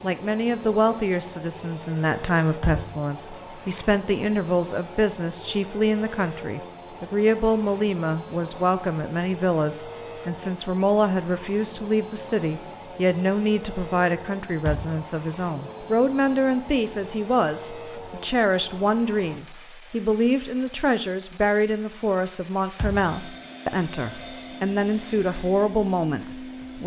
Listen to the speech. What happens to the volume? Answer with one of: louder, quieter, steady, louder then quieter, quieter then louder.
steady.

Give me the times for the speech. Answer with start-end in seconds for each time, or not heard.
0.0-26.8.